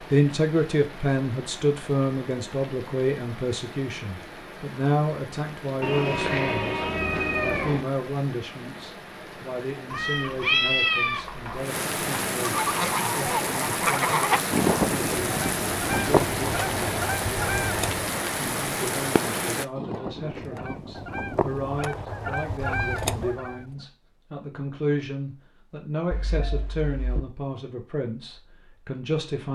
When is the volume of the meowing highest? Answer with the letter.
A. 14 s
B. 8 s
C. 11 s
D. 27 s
C.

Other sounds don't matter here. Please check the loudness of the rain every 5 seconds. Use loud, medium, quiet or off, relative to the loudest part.
quiet, quiet, loud, loud, off, off.